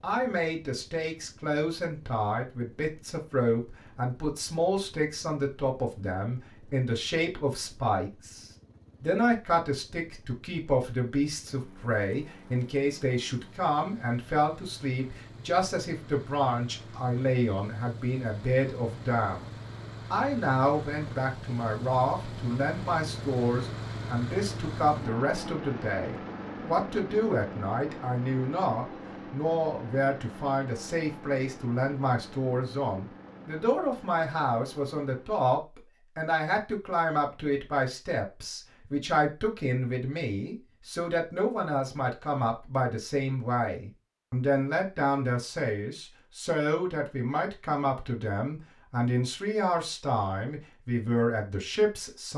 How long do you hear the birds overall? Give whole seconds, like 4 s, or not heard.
not heard.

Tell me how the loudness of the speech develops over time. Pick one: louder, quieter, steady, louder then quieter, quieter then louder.
steady.